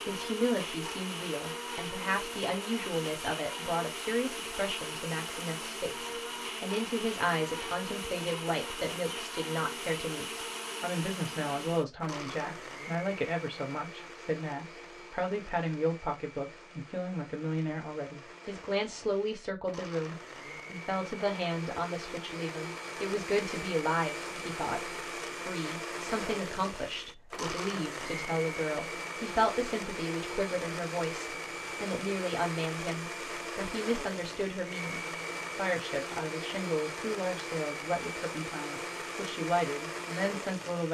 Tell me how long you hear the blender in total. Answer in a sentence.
You can hear the blender for 41 seconds altogether.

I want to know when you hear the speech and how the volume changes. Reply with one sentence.
The speech can be heard from 0.0 to 40.8 s, at a steady volume.